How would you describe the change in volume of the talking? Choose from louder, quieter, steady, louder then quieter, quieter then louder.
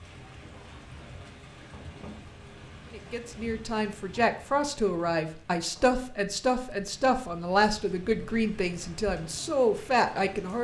steady.